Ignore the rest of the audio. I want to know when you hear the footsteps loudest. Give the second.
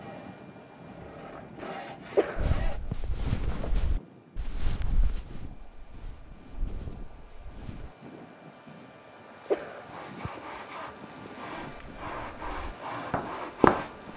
14 s.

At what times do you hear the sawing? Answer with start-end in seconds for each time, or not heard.
0.0-2.8, 9.8-14.1.